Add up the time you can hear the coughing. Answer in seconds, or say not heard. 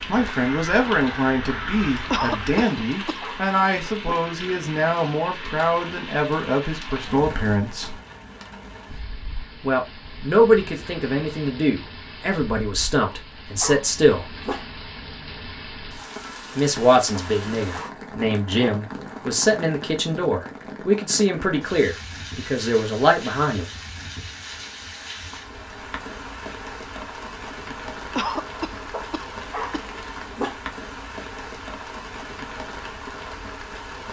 3 s.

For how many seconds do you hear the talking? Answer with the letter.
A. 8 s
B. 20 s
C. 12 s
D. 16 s
B.